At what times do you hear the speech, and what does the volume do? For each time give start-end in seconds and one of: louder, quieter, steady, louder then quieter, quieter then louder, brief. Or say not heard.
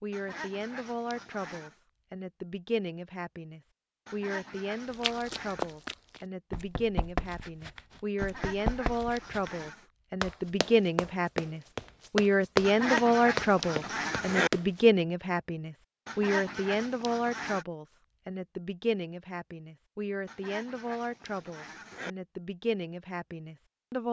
0.0-24.0 louder then quieter.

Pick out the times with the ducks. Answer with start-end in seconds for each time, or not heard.
0.1-1.8, 4.0-5.8, 8.2-9.8, 12.6-14.5, 16.1-17.6, 20.2-22.1.